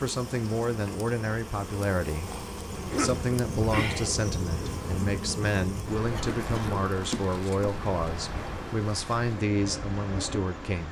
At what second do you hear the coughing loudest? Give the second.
3 s.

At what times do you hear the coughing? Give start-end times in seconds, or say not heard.
2.8-3.3, 6.1-6.8.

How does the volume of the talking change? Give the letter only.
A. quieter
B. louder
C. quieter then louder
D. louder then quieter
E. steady
E.